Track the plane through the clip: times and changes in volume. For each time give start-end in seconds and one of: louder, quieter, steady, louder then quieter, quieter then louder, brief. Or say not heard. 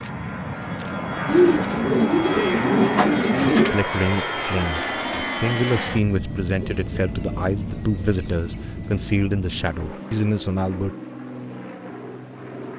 0.0-12.7 quieter.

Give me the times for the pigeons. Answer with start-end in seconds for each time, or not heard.
1.2-3.9, 6.6-9.0.